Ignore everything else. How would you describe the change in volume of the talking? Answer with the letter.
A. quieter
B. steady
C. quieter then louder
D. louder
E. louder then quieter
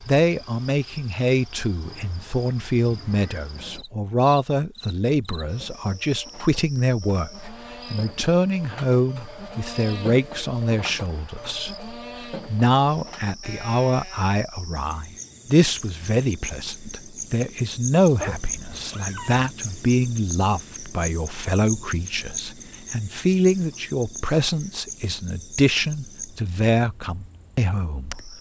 B.